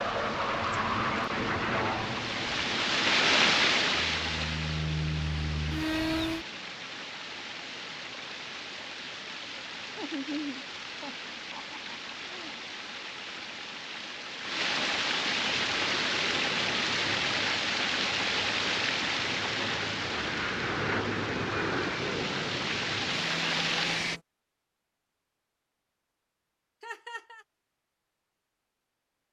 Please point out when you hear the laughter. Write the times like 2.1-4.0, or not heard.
9.9-12.6, 26.8-27.4.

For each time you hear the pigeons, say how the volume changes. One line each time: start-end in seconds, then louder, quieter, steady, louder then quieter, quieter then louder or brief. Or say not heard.
not heard.